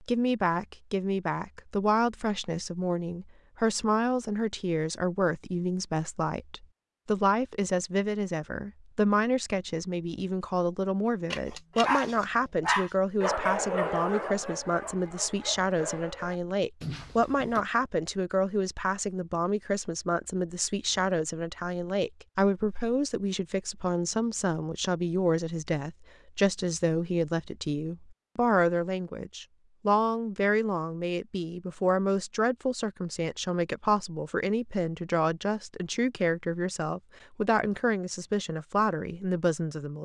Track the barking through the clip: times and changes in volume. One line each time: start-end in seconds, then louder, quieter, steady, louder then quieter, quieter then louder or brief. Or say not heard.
11.3-17.6 quieter.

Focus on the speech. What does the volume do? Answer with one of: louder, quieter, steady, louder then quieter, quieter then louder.
steady.